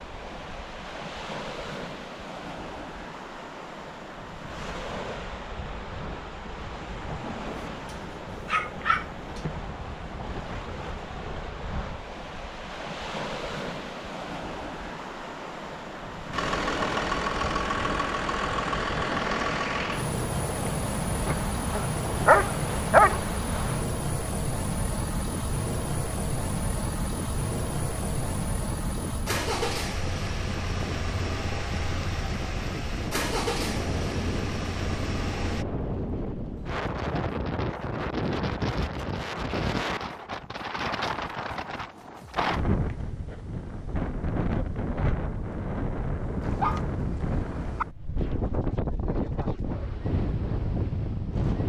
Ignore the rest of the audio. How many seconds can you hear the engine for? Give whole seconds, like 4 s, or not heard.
19 s.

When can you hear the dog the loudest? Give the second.
23 s.